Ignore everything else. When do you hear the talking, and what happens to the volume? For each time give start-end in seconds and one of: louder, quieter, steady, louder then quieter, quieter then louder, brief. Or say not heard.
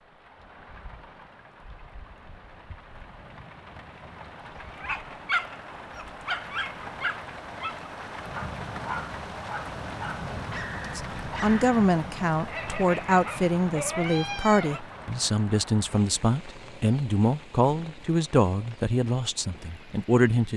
10.9-20.5 steady.